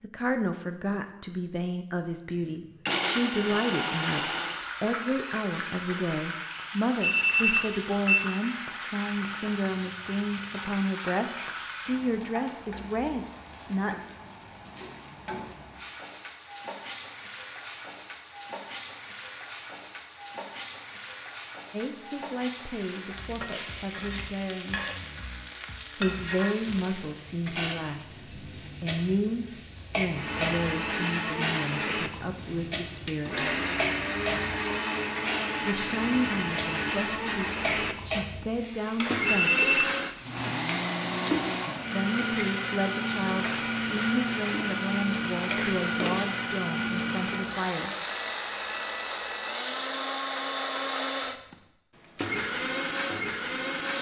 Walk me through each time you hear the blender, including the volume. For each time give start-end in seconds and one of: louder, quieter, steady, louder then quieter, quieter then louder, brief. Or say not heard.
2.4-4.7 brief
30.1-53.9 steady.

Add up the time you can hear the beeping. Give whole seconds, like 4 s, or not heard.
2 s.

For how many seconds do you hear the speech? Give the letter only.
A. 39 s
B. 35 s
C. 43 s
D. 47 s
B.